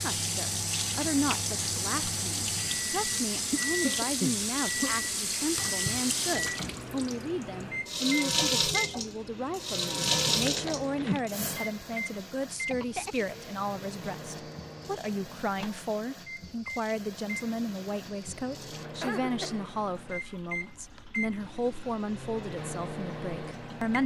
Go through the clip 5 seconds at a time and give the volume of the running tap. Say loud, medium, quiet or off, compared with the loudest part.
loud, loud, loud, quiet, quiet.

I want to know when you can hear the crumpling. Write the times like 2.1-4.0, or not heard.
10.4-11.2.